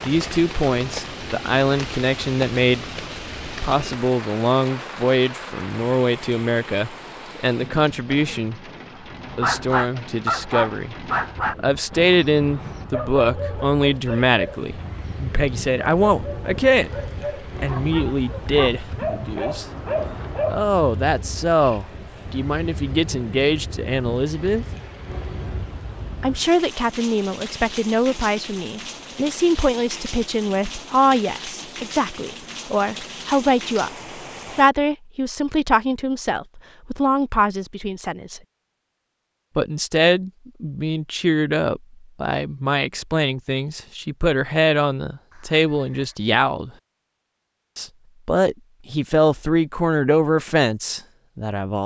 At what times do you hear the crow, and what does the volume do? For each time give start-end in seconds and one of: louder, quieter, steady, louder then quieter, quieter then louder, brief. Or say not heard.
not heard.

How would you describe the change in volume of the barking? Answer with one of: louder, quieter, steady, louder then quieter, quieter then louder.
quieter then louder.